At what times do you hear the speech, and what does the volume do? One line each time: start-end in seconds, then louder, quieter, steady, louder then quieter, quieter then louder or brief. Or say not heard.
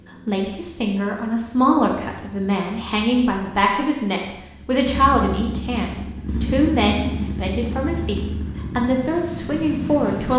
0.2-10.3 steady.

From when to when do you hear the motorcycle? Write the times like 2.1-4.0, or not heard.
0.0-10.3.